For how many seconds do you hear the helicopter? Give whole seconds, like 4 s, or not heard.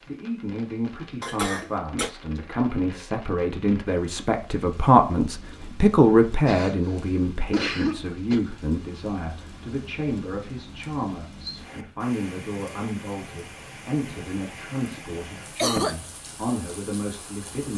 not heard.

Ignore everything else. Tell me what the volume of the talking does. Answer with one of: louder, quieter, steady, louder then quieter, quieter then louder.
louder then quieter.